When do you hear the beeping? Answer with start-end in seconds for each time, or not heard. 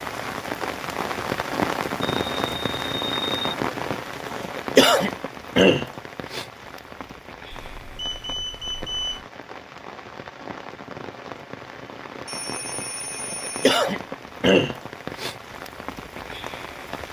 2.0-3.5, 7.5-9.2, 12.2-13.8.